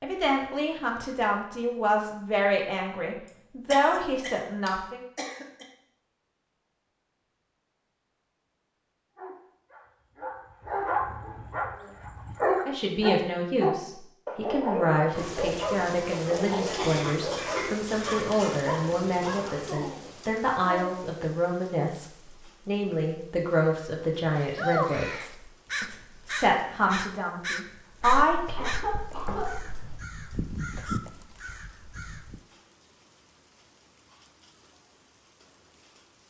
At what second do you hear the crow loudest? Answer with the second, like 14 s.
25 s.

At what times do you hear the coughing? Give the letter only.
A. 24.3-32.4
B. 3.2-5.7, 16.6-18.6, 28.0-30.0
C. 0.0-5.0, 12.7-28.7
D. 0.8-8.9
B.